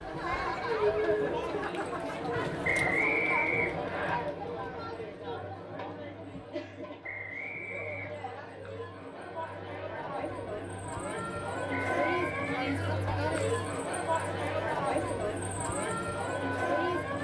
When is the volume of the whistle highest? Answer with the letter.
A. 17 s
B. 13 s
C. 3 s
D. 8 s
C.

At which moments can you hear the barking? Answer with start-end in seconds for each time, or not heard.
not heard.